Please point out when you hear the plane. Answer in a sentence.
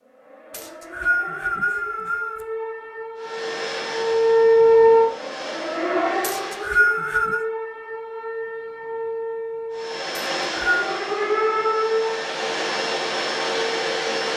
You can hear the plane from 3.1 to 6.8 s and from 9.7 to 14.3 s.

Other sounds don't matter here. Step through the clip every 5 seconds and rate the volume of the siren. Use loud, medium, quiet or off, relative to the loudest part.
loud, medium, loud.